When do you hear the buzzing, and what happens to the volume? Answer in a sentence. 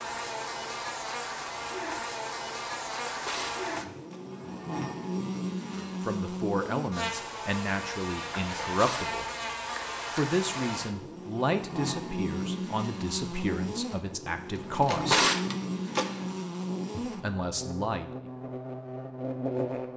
The buzzing can be heard from 0.0 to 19.9 s, at a steady volume.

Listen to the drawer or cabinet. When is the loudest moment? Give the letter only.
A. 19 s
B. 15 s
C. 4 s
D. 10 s
B.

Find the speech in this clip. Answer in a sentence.
The speech can be heard from 5.7 to 9.2 s, from 10.2 to 15.2 s and from 17.0 to 18.3 s.